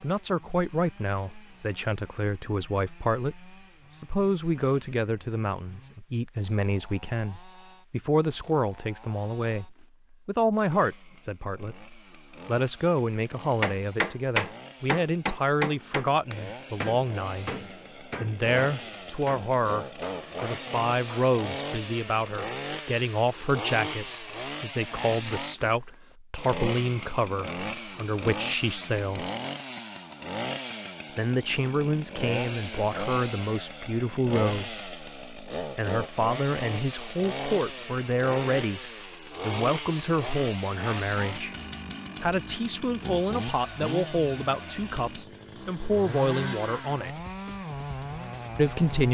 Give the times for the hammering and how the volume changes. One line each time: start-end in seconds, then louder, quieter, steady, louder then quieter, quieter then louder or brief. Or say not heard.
13.2-21.2 quieter.